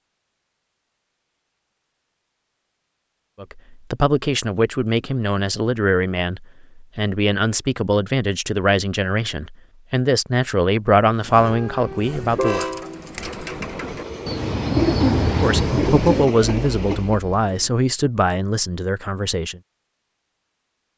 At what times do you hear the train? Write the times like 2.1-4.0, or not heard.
11.2-17.1.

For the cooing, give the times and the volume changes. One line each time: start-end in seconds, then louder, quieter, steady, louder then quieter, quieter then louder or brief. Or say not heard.
12.0-17.7 louder then quieter.